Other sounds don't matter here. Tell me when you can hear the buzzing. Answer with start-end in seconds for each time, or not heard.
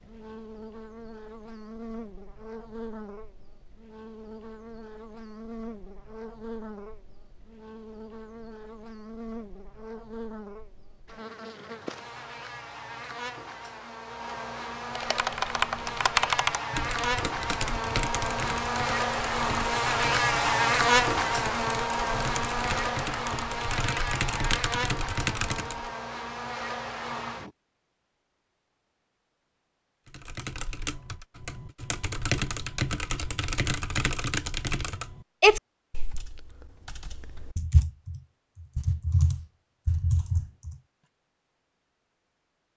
0.0-27.5.